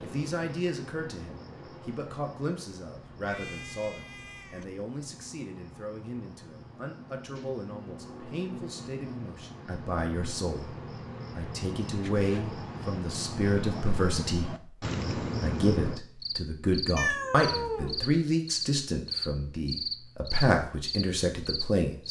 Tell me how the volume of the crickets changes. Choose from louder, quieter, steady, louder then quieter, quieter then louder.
louder.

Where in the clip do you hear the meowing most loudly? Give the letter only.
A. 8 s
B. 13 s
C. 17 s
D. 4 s
C.